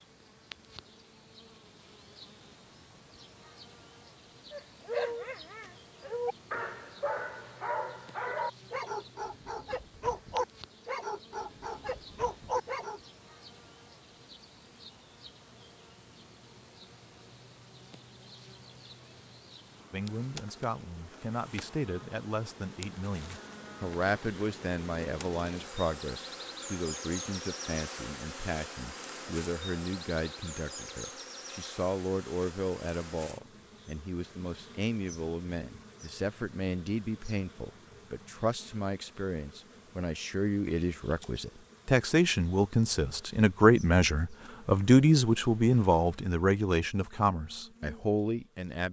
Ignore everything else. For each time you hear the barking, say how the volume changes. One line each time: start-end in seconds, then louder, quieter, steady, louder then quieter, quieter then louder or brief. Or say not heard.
4.5-13.0 steady.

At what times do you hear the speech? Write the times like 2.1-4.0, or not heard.
19.9-48.8.